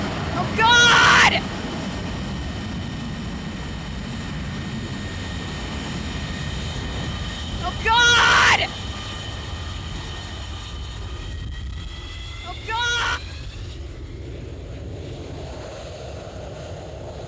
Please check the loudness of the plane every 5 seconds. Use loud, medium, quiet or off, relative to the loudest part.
loud, loud, medium, medium.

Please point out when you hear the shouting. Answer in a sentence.
The shouting can be heard from 0.3 to 1.4 s, from 7.6 to 8.7 s and from 12.4 to 13.2 s.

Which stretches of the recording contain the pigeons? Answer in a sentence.
The pigeons can't be heard in this clip.